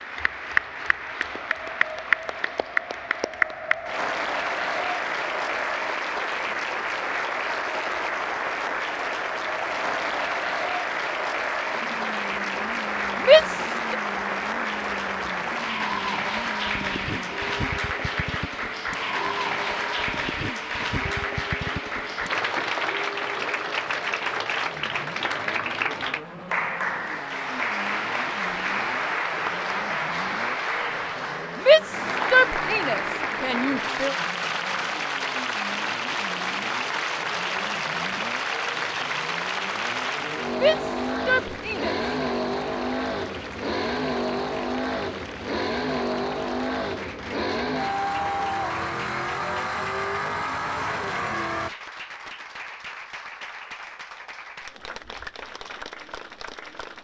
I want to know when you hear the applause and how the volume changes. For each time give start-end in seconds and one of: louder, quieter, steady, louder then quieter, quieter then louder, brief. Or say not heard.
0.0-56.9 quieter.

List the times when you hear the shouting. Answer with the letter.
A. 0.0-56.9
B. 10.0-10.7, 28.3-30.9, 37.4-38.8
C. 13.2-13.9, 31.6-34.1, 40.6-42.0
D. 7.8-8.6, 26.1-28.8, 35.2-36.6
C.